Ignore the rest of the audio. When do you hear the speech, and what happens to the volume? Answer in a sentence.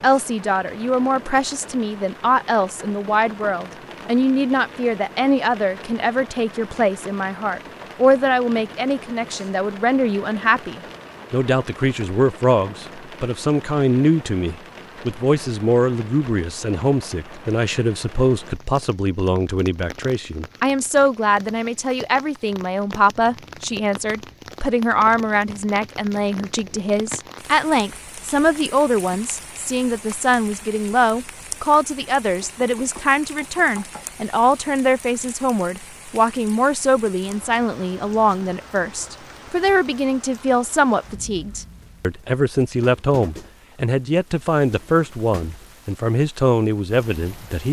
You can hear the speech from 0.0 to 47.6 s, at a steady volume.